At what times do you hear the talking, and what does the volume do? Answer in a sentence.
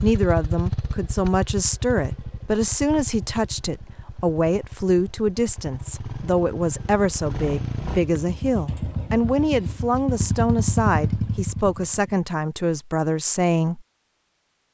You can hear the talking from 0.0 to 13.8 s, at a steady volume.